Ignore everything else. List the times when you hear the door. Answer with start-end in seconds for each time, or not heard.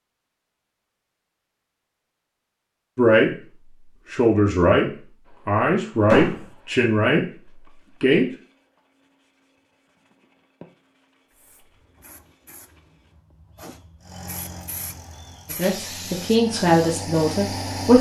6.1-6.5.